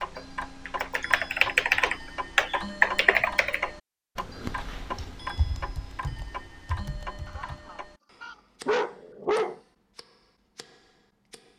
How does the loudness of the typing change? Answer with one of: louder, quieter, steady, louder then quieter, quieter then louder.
quieter.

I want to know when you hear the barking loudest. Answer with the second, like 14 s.
9 s.